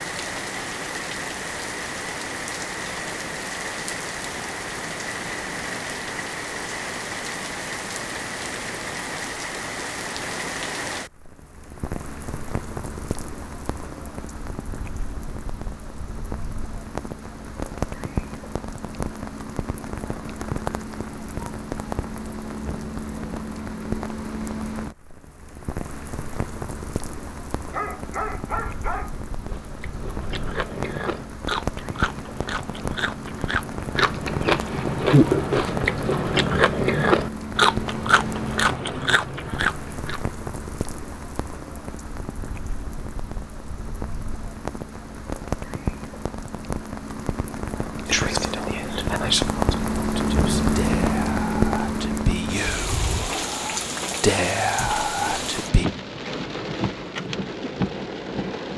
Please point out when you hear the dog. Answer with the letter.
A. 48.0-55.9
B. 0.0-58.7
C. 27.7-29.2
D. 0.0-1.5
C.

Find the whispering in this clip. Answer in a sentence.
The whispering can be heard from 48.0 to 55.9 s.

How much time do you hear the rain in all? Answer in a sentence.
The rain can be heard for 59 seconds in total.